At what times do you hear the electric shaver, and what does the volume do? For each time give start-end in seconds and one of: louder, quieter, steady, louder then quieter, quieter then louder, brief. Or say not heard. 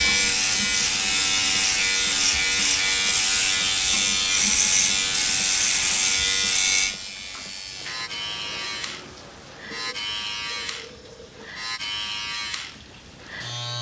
0.0-13.7 quieter.